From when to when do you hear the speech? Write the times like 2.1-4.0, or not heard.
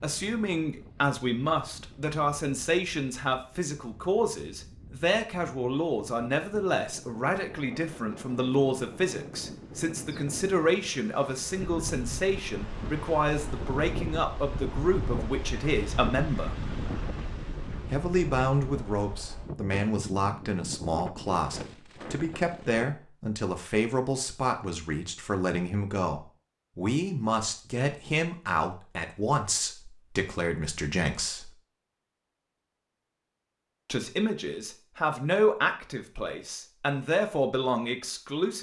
0.0-16.6, 17.9-31.6, 33.9-38.5.